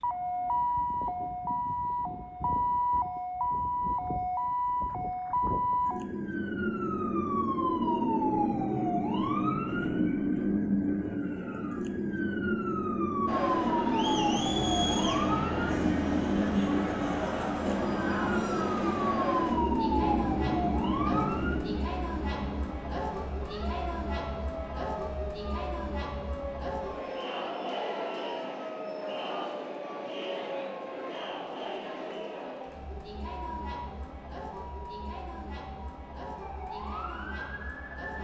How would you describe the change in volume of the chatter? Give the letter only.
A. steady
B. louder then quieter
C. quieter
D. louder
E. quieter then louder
C.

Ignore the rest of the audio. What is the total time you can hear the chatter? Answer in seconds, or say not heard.
25 s.